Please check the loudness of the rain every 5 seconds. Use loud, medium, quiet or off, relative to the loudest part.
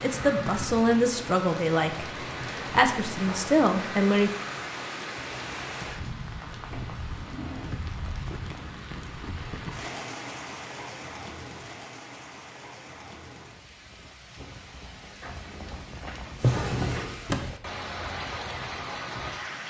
loud, loud, medium, loud.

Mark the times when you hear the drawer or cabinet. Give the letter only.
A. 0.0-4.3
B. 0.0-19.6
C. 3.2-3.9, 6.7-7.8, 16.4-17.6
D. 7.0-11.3
C.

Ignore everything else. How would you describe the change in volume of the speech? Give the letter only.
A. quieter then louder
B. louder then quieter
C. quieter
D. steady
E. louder
A.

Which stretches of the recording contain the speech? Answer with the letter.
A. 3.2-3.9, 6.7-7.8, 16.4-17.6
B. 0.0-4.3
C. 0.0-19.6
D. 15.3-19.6
B.